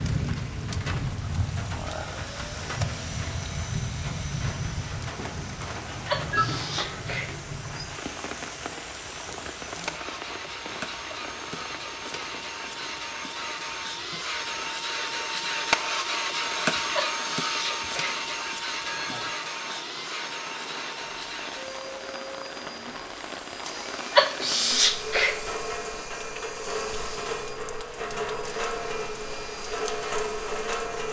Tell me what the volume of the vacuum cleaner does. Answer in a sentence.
The loudness of the vacuum cleaner goes up, then down.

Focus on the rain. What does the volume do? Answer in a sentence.
The loudness of the rain goes down, then up.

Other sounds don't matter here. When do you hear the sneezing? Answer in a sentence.
You can hear the sneezing from 6.0 to 7.3 s, from 16.9 to 18.2 s and from 24.1 to 25.4 s.